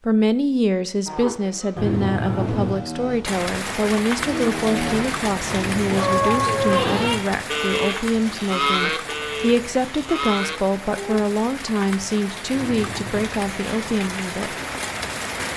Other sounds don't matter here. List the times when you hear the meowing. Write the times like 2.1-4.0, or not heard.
1.8-2.9, 5.5-7.2, 12.5-13.2.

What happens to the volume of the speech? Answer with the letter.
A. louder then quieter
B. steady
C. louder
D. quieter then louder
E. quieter
B.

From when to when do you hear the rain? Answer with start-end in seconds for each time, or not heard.
3.2-15.5.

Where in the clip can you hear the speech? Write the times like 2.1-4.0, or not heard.
0.1-14.6.